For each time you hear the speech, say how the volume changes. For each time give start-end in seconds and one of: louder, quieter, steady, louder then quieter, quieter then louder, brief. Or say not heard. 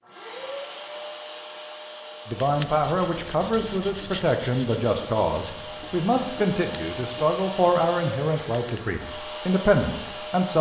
2.2-10.5 steady.